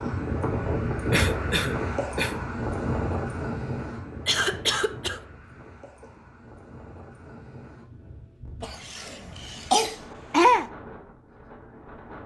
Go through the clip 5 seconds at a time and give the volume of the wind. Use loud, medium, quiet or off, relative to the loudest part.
loud, quiet, quiet.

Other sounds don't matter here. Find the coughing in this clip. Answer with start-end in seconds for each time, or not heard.
1.1-2.4, 4.2-5.2, 8.6-10.7.